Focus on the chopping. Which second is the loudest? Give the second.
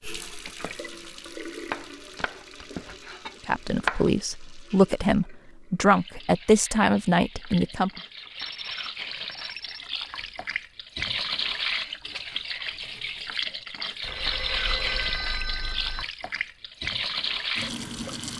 4 s.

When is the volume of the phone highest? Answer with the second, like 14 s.
15 s.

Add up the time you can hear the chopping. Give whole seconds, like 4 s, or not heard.
3 s.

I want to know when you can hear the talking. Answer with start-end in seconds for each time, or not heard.
3.5-7.9.